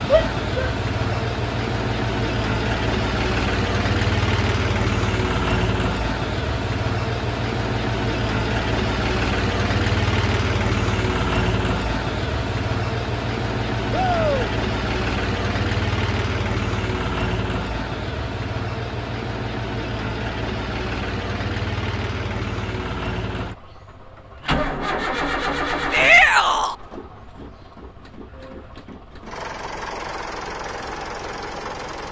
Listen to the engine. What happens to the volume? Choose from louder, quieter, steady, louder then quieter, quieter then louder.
quieter.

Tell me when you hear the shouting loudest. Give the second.
26 s.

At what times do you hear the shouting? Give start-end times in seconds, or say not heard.
0.1-1.2, 13.9-14.5, 25.9-26.8.